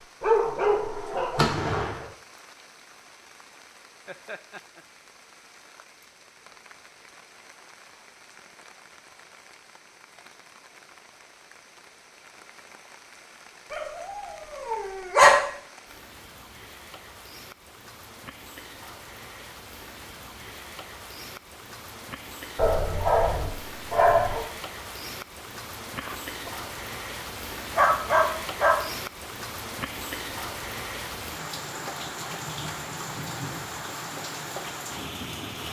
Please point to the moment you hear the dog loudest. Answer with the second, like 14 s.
15 s.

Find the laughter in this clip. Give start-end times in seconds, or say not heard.
4.0-4.8, 25.9-26.6.